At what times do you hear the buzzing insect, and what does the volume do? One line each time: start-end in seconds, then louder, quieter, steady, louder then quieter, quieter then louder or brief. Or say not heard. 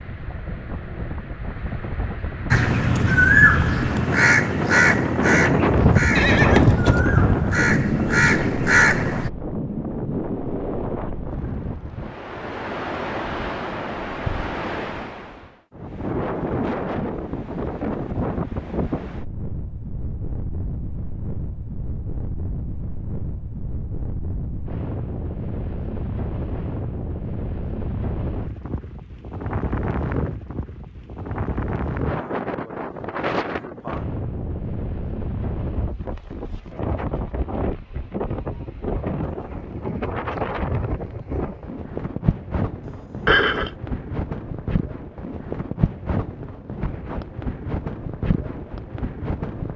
not heard.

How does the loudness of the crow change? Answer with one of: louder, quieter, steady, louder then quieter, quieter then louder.
quieter then louder.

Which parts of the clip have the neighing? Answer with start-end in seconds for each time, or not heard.
6.2-7.0, 43.2-43.7.